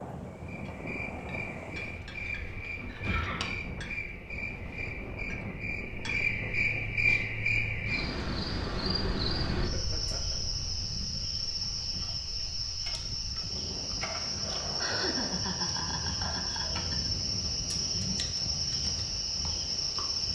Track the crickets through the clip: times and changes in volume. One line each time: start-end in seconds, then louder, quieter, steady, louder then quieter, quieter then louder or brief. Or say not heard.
0.1-20.3 louder.